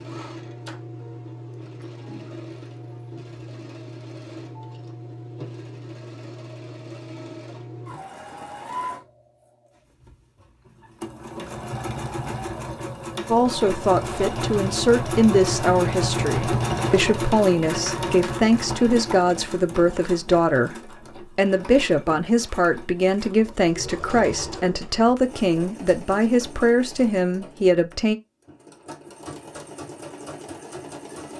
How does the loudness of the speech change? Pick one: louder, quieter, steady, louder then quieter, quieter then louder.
steady.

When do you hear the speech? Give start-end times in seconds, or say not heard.
13.3-28.1.